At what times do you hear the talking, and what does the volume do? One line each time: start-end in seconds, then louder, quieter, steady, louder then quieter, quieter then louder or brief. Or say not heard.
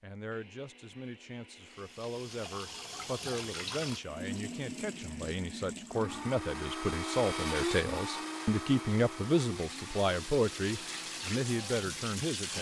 0.0-12.5 louder.